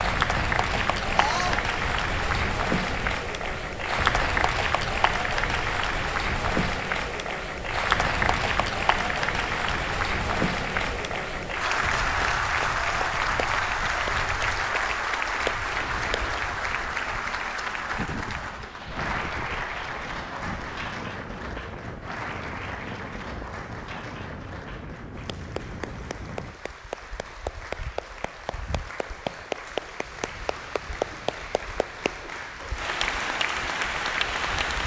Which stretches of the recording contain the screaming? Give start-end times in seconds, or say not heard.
1.1-1.6.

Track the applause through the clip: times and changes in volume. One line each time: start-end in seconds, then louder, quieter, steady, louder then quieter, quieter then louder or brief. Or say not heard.
0.0-34.8 quieter then louder.